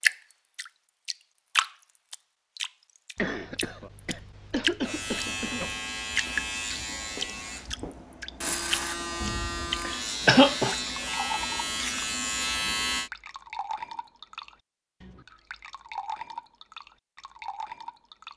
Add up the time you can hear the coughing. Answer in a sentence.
You can hear the coughing for 3 seconds altogether.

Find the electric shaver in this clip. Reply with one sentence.
You can hear the electric shaver from 4.8 to 13.1 s.